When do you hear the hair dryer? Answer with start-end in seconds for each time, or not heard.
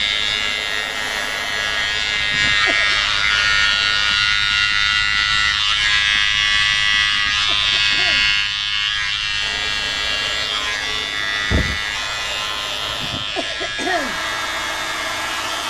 0.0-4.2, 9.4-15.6.